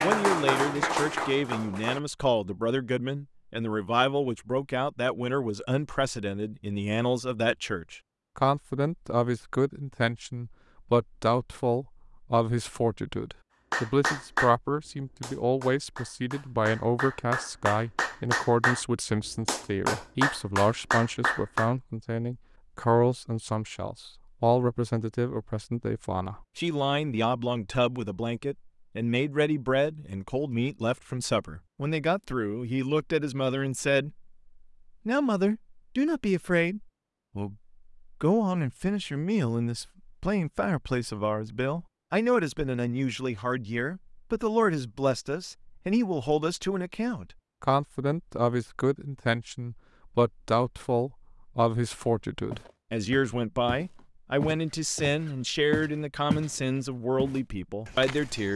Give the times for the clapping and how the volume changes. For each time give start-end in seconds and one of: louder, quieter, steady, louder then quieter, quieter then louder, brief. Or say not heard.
0.0-2.0 brief
13.7-21.7 quieter then louder.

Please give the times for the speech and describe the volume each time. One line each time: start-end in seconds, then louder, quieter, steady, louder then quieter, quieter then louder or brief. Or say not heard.
0.0-34.3 steady
35.0-58.5 steady.